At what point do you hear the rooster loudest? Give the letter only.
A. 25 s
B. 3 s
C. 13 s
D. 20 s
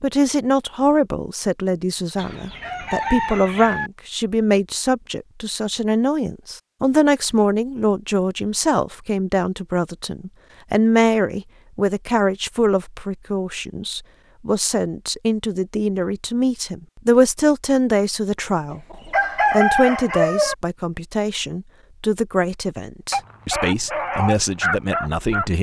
D.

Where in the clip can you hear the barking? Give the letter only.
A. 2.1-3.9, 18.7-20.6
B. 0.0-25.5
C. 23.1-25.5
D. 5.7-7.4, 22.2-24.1
C.